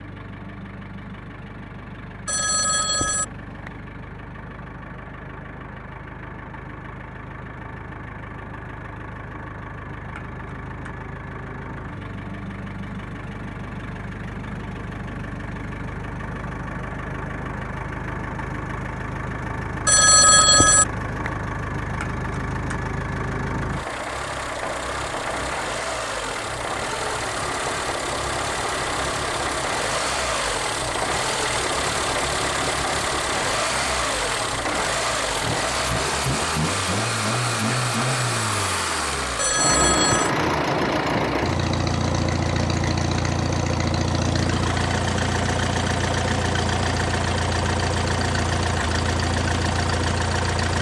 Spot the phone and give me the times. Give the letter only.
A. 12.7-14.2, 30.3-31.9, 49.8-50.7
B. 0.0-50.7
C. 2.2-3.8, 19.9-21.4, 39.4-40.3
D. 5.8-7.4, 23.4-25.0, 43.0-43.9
C.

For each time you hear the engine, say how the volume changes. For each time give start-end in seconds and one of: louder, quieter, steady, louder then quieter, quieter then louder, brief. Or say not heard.
0.0-50.7 louder.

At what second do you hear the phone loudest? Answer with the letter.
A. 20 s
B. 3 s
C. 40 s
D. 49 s
A.